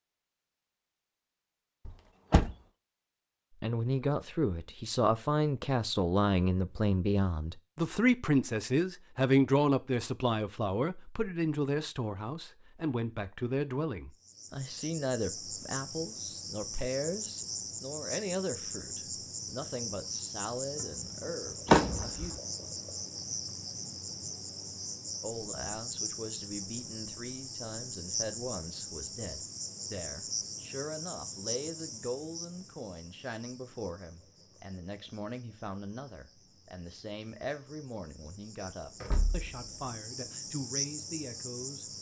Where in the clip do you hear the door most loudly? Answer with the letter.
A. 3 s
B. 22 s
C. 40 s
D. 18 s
B.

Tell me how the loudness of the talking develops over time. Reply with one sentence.
The volume of the talking goes down.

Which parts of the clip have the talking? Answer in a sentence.
You can hear the talking from 3.6 to 22.4 s and from 25.2 to 41.9 s.